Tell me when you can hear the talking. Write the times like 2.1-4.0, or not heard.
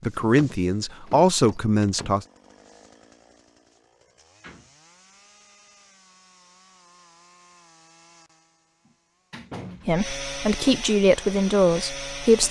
0.0-2.2, 9.8-12.4.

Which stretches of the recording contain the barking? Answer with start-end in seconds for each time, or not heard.
not heard.